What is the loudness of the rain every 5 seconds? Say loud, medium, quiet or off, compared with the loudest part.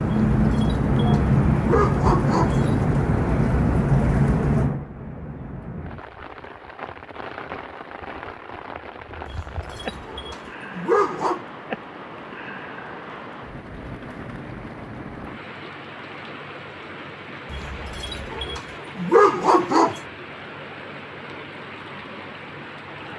loud, quiet, quiet, quiet, quiet.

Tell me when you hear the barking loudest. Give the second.
19 s.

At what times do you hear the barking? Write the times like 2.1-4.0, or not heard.
0.1-2.9, 9.2-11.4, 17.5-20.0.